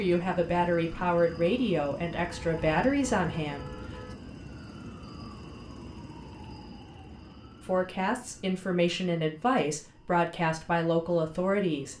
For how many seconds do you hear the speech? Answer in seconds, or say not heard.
8 s.